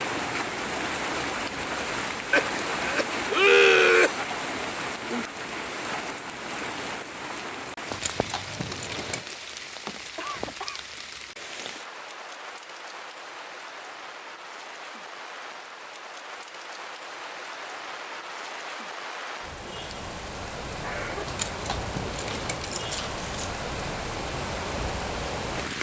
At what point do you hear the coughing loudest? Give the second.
4 s.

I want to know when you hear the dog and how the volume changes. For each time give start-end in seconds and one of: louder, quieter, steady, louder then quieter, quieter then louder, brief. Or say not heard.
not heard.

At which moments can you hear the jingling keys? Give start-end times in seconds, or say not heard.
7.9-9.2, 21.2-23.5.